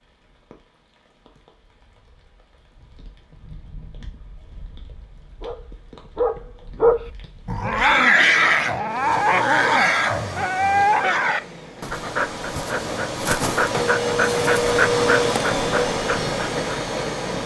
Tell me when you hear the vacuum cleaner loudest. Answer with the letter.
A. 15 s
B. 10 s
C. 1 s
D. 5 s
A.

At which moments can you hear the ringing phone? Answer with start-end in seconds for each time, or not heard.
not heard.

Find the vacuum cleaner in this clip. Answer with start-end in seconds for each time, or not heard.
8.8-17.4.